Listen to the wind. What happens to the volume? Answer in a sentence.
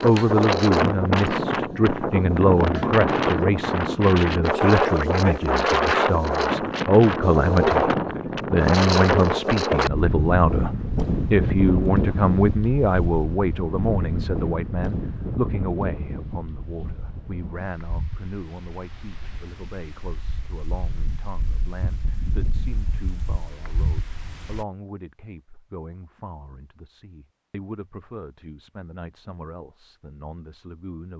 The volume of the wind goes down.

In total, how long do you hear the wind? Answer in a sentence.
You can hear the wind for 25 seconds altogether.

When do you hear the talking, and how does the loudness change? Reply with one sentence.
The talking can be heard from 0.0 to 31.1 s, getting quieter.